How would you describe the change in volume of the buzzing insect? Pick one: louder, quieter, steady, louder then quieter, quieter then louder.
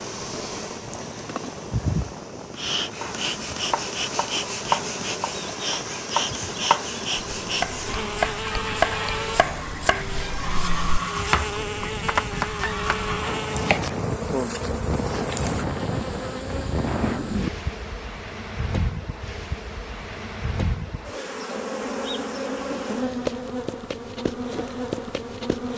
steady.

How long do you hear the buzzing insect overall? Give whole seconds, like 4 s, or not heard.
26 s.